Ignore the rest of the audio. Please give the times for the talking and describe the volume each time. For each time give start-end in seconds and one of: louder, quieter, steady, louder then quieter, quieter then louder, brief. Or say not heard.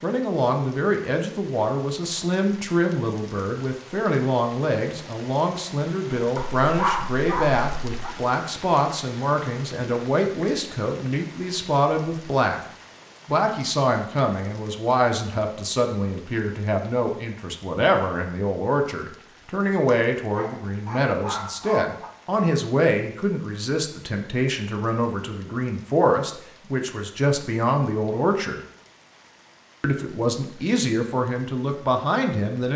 0.0-12.6 steady
13.2-28.6 steady
29.8-32.7 brief.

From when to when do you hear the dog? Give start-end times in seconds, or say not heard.
6.3-8.2, 19.9-22.1.